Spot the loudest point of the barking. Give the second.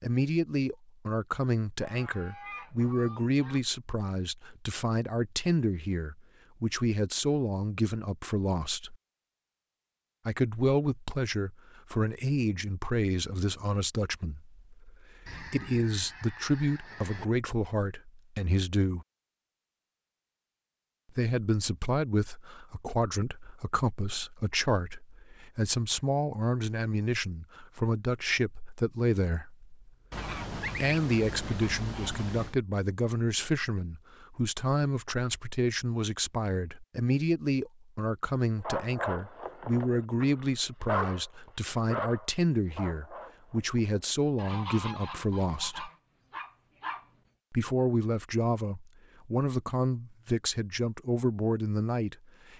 41 s.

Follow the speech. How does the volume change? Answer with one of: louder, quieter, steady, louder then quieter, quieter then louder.
steady.